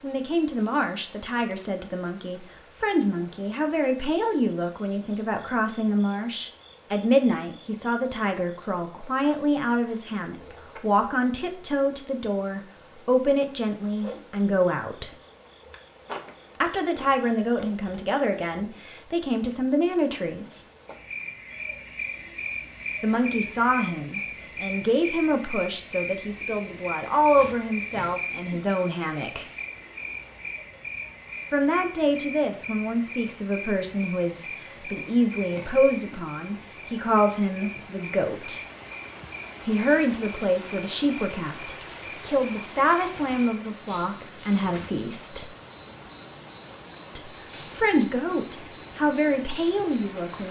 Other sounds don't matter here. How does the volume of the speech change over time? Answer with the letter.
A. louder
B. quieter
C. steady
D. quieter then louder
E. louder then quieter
C.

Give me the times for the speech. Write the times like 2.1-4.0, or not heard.
0.0-15.2, 16.6-20.6, 23.0-29.4, 31.5-38.6, 39.6-45.5, 47.1-50.4.